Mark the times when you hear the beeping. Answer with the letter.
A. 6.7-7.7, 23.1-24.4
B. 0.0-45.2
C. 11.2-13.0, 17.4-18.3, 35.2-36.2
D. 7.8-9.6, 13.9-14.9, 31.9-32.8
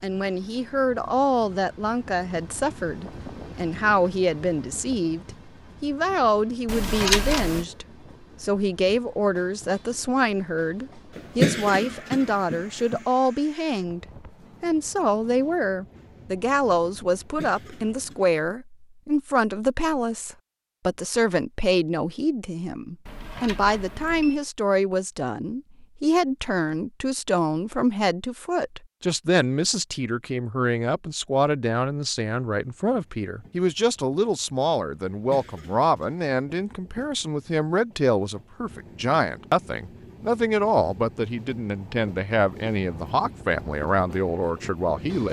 A.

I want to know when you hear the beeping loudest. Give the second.
7 s.